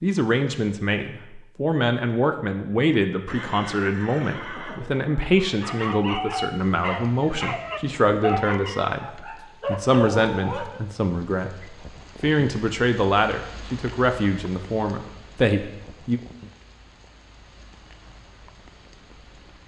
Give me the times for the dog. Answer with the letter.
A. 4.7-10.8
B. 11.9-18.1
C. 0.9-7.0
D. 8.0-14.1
A.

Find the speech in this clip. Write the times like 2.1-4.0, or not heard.
0.0-16.2.